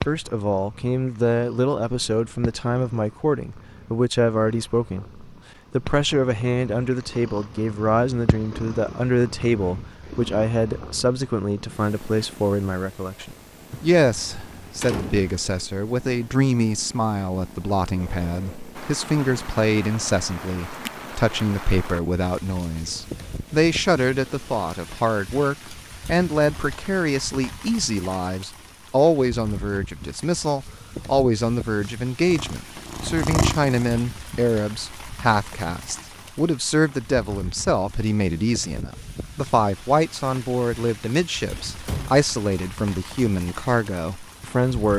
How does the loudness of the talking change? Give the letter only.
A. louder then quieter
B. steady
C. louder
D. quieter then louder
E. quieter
B.